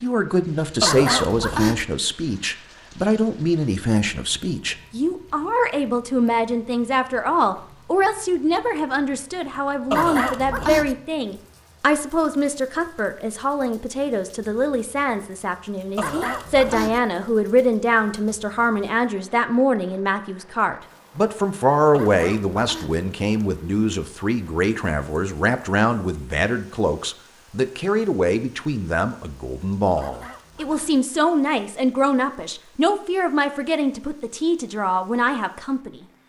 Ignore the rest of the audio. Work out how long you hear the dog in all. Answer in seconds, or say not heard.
5 s.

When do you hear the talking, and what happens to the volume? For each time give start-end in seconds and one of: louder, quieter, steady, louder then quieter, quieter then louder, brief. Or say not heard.
0.0-36.0 steady.